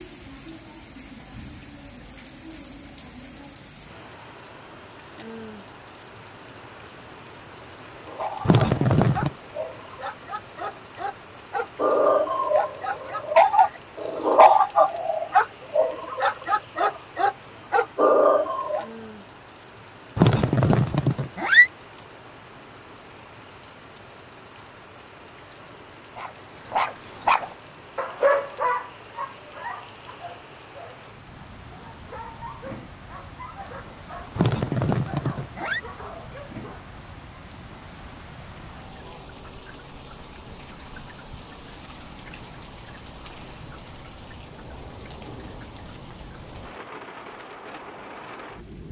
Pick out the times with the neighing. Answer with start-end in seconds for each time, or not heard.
8.4-9.3, 20.1-21.7, 34.4-35.8.